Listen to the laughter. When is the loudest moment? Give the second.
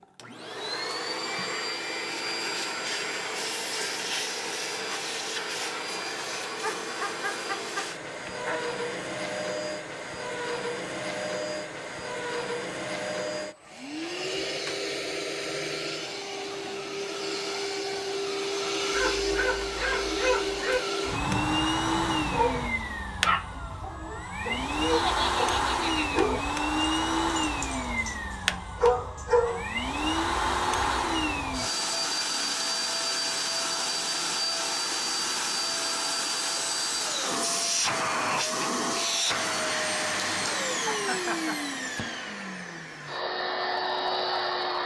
25 s.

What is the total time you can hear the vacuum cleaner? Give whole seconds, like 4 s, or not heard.
45 s.